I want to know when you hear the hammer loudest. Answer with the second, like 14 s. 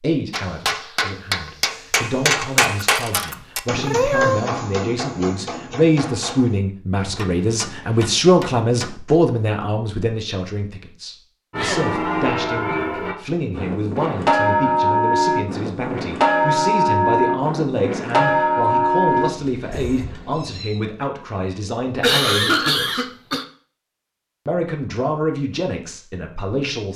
2 s.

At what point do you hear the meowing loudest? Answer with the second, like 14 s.
4 s.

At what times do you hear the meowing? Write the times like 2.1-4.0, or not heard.
2.6-4.4, 11.6-12.2, 19.3-20.9.